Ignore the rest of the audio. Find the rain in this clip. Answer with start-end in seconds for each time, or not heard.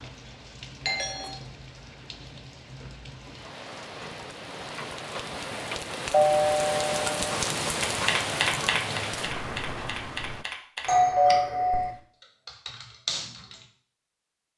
0.0-10.4.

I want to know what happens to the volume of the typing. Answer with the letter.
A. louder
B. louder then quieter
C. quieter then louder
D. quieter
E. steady
C.